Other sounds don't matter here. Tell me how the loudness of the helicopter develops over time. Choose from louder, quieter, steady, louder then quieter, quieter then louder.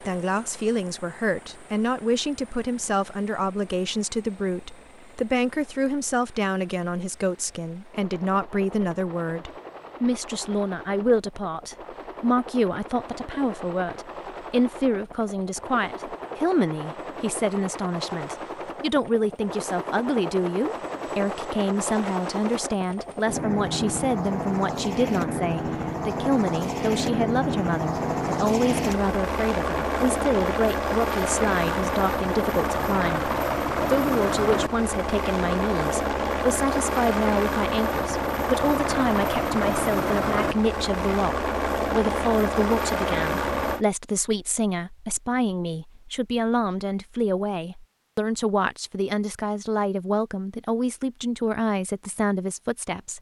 louder.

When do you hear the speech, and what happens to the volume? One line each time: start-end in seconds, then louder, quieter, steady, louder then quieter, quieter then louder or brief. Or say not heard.
0.0-53.1 steady.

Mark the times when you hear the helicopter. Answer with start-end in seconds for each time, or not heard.
0.0-43.9.